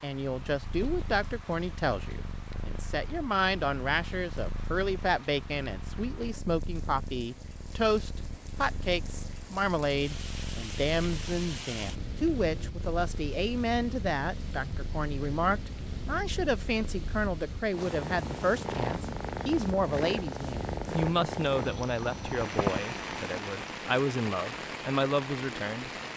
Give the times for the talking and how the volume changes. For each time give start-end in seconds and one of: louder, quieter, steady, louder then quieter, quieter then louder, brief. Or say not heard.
0.0-25.9 steady.